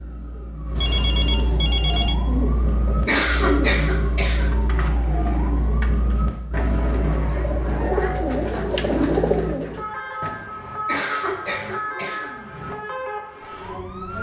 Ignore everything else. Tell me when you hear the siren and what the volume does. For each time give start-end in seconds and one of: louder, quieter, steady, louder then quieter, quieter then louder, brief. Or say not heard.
0.0-14.1 steady.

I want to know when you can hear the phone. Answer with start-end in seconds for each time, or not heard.
0.8-2.1.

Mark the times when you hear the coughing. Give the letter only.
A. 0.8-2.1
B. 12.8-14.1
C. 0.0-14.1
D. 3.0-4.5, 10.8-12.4
D.